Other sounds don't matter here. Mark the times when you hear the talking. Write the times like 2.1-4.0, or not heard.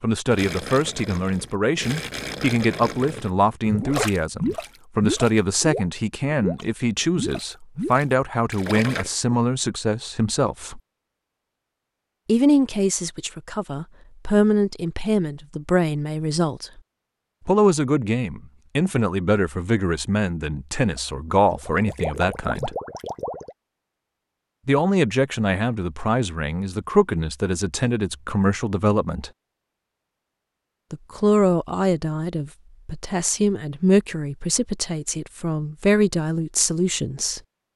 0.0-10.8, 12.2-16.8, 17.4-22.8, 24.6-29.3, 30.9-37.4.